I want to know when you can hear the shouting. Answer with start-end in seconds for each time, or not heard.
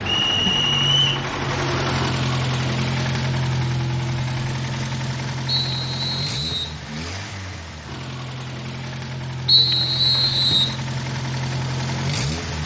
not heard.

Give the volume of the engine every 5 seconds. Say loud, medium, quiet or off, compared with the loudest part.
loud, medium, loud.